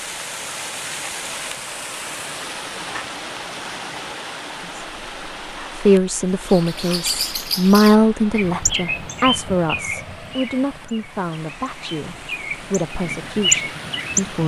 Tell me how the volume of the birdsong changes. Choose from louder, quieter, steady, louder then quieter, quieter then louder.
quieter then louder.